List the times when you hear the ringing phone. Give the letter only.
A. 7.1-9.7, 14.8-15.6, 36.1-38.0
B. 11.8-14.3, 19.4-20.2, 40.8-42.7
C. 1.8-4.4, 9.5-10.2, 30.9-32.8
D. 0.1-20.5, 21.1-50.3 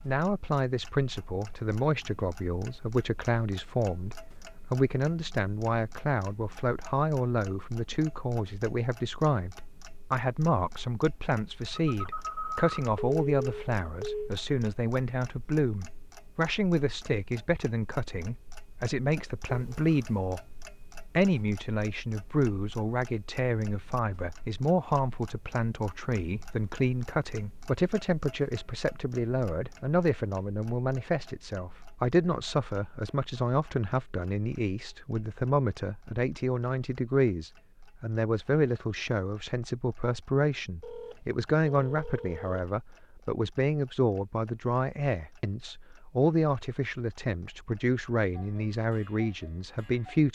B.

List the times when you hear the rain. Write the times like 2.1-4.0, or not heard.
not heard.